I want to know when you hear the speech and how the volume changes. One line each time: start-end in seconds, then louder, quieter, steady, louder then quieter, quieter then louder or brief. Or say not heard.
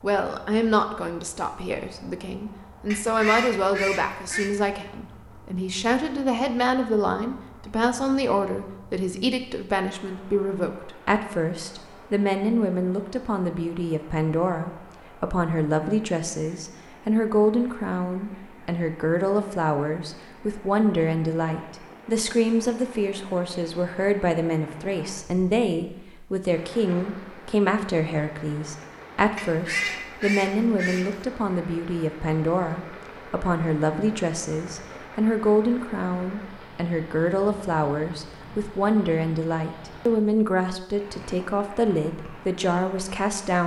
0.0-43.6 steady.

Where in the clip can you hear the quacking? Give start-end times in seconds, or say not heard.
2.9-4.5, 29.4-31.2.